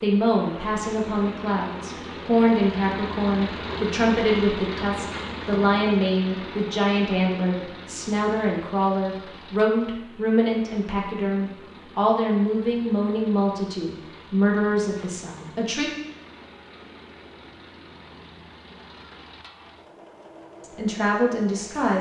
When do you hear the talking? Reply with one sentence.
You can hear the talking from 0.0 to 15.9 s and from 20.6 to 21.9 s.